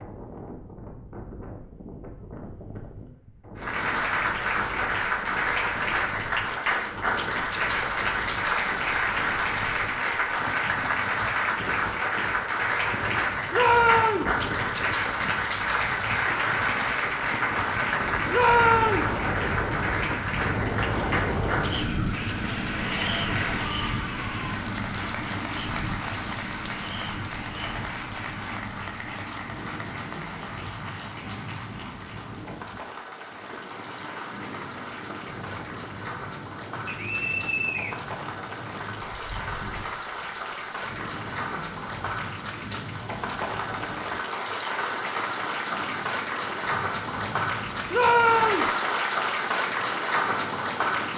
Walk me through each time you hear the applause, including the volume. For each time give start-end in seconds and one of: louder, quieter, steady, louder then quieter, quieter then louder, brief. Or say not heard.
3.5-51.1 quieter then louder.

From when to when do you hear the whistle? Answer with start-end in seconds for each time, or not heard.
36.9-38.0.